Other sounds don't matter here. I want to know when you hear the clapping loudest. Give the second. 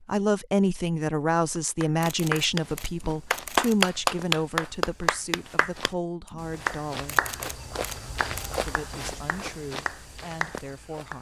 4 s.